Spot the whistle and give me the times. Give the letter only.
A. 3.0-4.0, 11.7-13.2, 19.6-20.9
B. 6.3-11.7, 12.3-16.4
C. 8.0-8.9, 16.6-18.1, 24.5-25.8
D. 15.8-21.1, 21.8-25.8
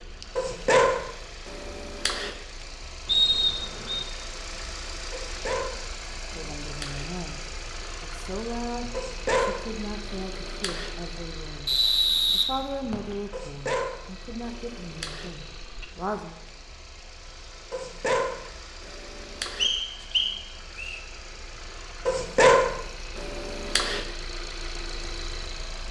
A.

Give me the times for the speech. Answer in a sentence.
You can hear the speech from 6.3 to 11.7 s and from 12.3 to 16.4 s.